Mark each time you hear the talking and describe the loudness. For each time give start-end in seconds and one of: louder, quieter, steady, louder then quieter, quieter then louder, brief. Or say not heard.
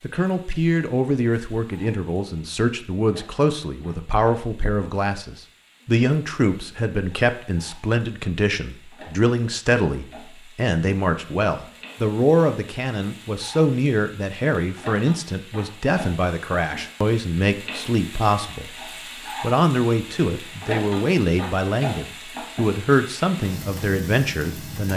0.0-24.9 steady.